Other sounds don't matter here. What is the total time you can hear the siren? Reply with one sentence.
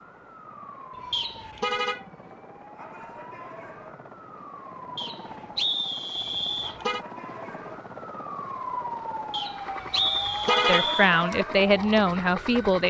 You can hear the siren for 13 seconds altogether.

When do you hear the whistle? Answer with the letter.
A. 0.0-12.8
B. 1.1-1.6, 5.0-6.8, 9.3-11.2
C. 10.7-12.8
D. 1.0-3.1
B.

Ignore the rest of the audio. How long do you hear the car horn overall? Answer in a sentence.
You can hear the car horn for 3 seconds altogether.